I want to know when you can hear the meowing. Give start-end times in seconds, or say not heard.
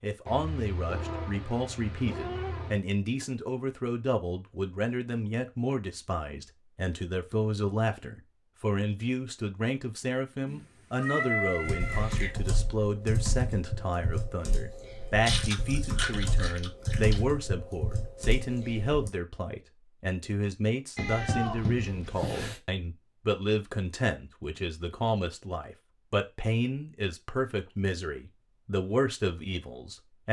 0.2-2.8, 10.4-12.3, 20.9-22.6.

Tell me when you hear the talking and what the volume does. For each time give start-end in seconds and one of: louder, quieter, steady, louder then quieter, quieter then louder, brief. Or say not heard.
0.0-30.2 steady.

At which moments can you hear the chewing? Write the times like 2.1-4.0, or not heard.
15.2-17.2.